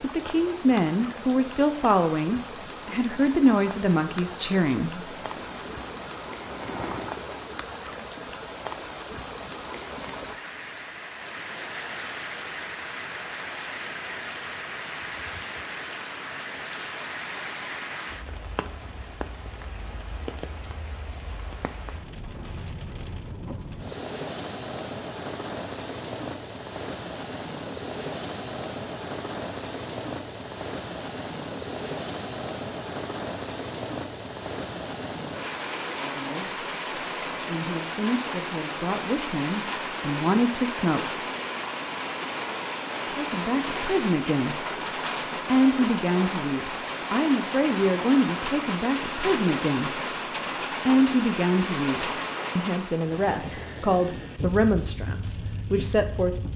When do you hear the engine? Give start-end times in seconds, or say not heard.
5.0-7.4.